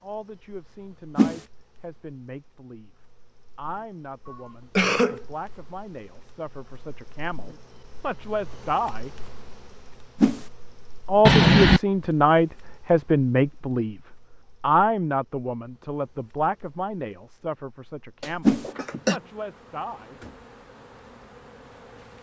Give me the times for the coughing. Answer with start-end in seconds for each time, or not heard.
4.2-5.2, 11.2-11.8, 18.2-19.2.